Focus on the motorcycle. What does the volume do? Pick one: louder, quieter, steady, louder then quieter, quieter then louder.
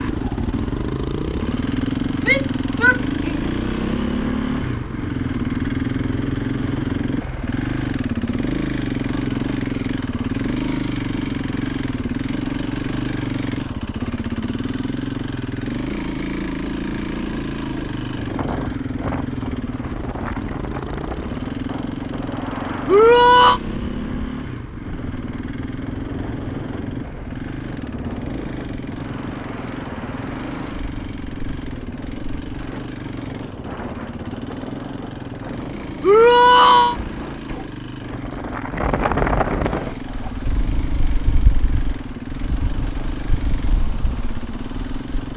quieter.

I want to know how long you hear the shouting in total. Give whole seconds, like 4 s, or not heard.
3 s.